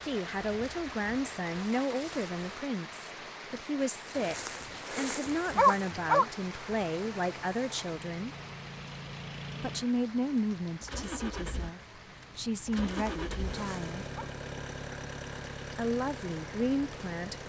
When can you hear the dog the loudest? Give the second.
6 s.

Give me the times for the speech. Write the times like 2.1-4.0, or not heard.
0.0-8.3, 9.6-14.1, 15.8-17.4.